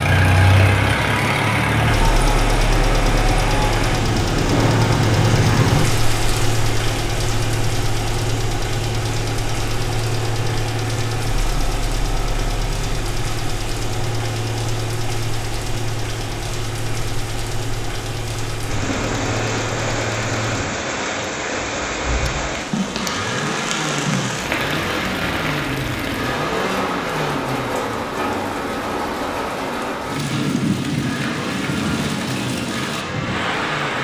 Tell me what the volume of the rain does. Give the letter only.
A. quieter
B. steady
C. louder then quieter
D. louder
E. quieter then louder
E.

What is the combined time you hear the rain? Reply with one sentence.
You can hear the rain for 34 seconds altogether.